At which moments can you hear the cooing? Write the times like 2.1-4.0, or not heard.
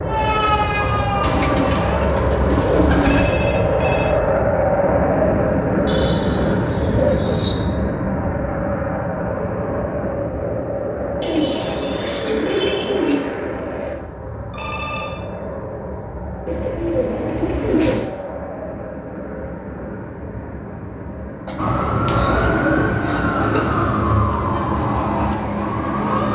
1.2-3.4, 5.8-7.5, 11.2-13.2, 16.4-18.1, 21.4-23.8.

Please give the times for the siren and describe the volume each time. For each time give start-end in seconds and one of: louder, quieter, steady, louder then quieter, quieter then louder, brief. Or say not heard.
0.0-2.1 brief
21.6-26.3 steady.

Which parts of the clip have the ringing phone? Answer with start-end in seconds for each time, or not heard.
3.0-4.2, 14.5-15.2, 22.1-22.8.